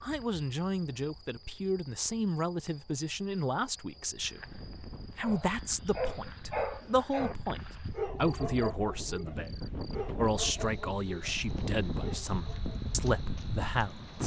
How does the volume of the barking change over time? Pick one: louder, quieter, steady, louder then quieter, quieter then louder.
quieter.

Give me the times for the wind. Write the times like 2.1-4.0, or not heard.
4.2-14.2.